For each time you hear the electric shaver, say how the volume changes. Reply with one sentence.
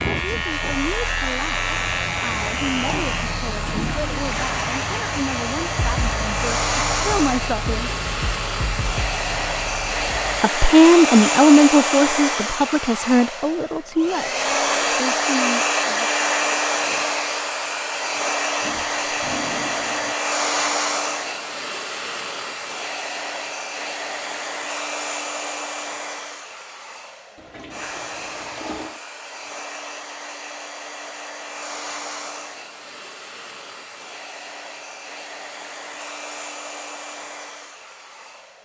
You can hear the electric shaver from 0.0 to 10.4 s, getting quieter.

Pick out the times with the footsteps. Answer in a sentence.
The footsteps can't be heard in this clip.